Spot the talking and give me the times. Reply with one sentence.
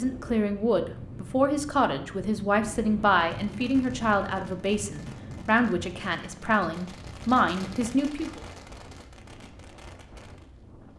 The talking can be heard from 0.0 to 8.4 s.